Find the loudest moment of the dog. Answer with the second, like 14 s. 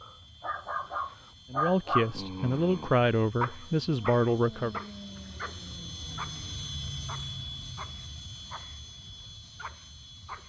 2 s.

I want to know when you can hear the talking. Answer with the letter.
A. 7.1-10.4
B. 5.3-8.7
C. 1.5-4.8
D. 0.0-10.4
C.